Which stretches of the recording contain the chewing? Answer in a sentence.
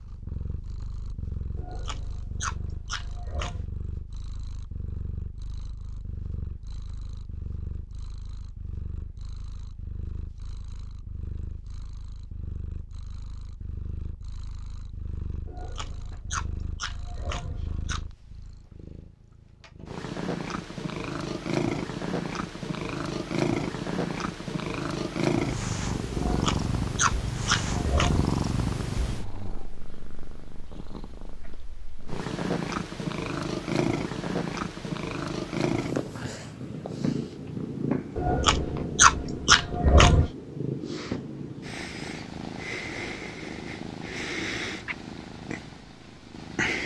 You can hear the chewing from 1.6 to 3.6 s, from 15.4 to 18.1 s, from 26.1 to 28.2 s and from 38.1 to 40.3 s.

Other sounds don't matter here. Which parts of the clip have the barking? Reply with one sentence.
You can't hear the barking here.